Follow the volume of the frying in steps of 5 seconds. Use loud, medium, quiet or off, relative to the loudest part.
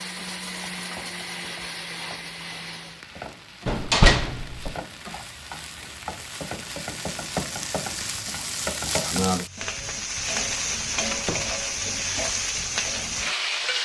quiet, loud, loud.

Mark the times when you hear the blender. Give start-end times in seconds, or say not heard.
0.0-3.0.